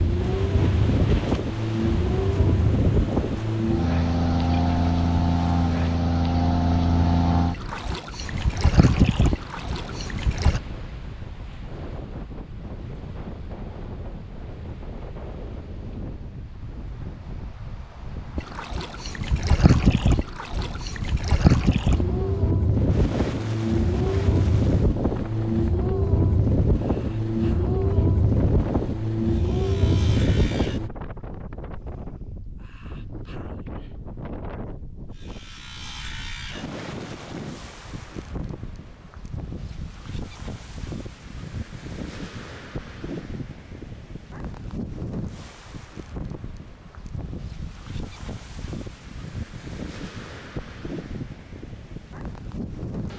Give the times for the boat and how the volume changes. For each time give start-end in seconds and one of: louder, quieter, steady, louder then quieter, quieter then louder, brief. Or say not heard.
0.0-10.6 steady
18.4-30.9 steady.